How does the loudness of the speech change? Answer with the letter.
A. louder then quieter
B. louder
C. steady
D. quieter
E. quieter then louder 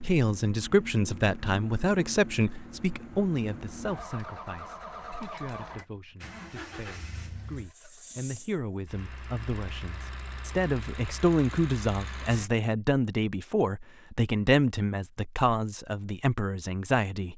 E.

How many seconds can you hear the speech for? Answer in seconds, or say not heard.
17 s.